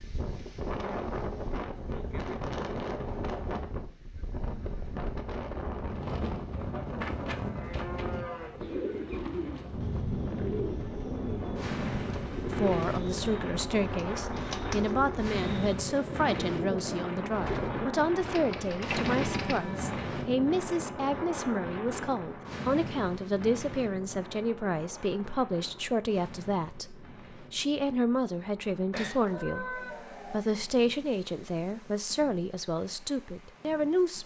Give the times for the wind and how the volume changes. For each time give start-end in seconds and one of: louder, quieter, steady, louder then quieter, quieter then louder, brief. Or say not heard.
0.0-34.2 quieter.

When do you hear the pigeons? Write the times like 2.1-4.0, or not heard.
8.6-19.6.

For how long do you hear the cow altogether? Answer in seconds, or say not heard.
4 s.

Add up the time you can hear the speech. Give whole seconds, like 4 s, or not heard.
22 s.